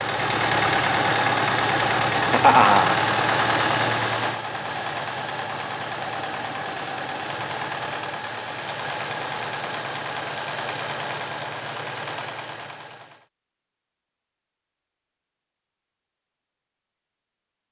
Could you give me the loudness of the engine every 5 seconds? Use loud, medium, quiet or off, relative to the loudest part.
loud, medium, medium, off.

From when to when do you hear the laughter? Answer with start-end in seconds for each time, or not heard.
2.1-3.0.